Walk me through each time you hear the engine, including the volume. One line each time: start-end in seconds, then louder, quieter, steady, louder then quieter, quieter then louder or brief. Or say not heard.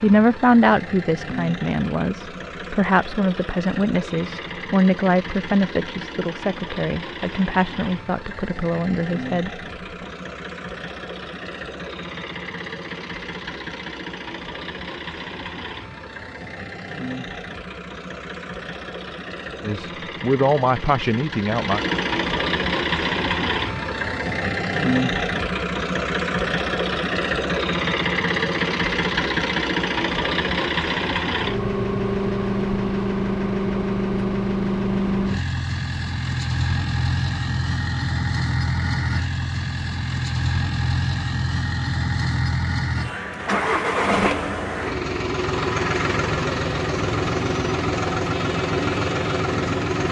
0.0-50.0 louder.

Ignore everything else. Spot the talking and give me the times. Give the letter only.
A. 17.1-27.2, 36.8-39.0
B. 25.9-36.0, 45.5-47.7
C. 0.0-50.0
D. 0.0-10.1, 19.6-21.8
D.